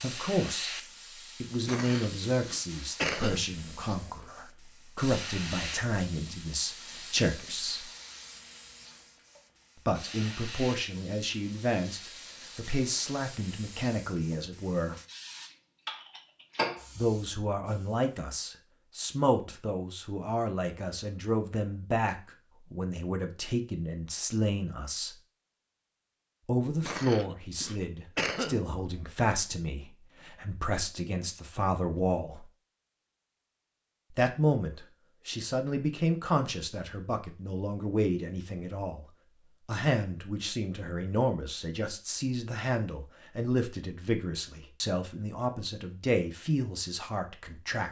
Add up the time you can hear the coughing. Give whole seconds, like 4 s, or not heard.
4 s.